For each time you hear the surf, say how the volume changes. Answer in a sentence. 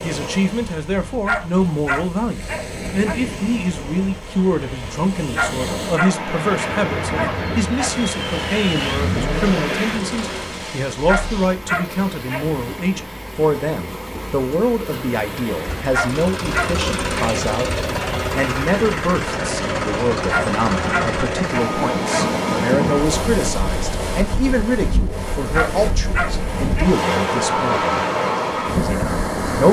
You can hear the surf from 0.0 to 29.6 s, getting louder.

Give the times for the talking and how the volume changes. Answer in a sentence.
You can hear the talking from 0.0 to 27.9 s, at a steady volume; and briefly from 28.8 to 29.6 s.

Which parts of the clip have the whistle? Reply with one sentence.
You can't hear the whistle here.